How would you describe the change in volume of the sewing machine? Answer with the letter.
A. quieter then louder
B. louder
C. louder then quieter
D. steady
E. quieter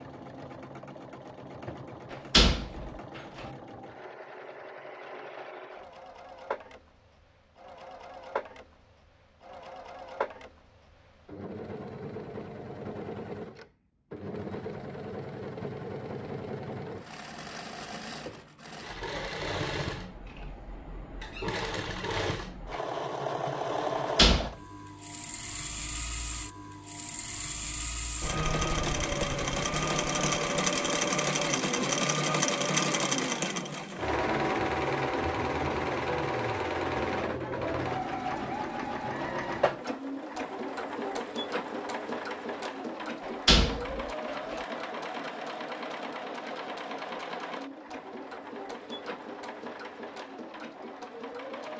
C.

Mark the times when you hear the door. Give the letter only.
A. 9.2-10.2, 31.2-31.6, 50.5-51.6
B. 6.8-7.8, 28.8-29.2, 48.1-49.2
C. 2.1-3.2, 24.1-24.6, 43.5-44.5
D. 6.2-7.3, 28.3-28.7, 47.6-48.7
C.